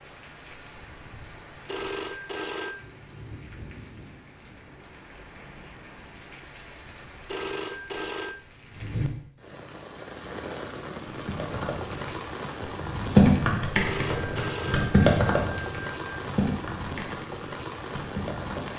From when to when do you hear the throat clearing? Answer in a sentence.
The throat clearing can't be heard in this clip.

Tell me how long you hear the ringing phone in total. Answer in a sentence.
The ringing phone can be heard for 5 seconds in total.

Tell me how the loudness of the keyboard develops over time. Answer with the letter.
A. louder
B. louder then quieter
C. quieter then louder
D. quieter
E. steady
B.